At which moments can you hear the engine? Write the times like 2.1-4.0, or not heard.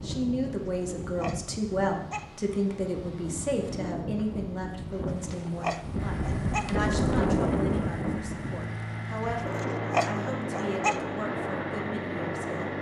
6.0-12.7.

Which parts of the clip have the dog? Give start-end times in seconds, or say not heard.
0.7-2.2, 5.0-6.7, 9.4-11.0.